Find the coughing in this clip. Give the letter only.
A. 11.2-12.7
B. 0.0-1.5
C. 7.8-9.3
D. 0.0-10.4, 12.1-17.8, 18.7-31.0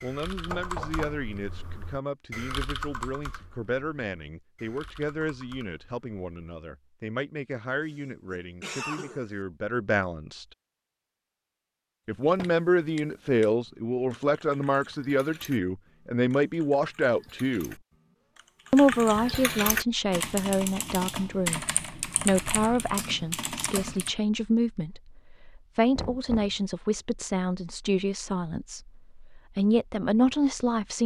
C.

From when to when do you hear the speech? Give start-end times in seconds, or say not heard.
0.0-10.4, 12.1-17.8, 18.7-31.0.